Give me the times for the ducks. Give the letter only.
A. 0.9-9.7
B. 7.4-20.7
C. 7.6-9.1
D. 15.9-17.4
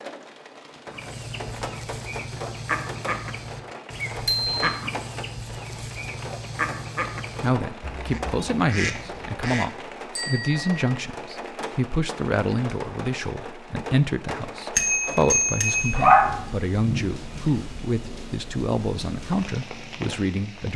A.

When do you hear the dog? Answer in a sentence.
You can hear the dog from 15.9 to 17.4 s.